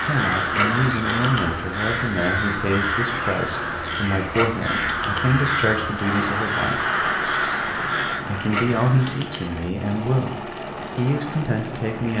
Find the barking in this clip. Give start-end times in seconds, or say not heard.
0.5-1.5, 4.3-5.3, 8.4-9.4.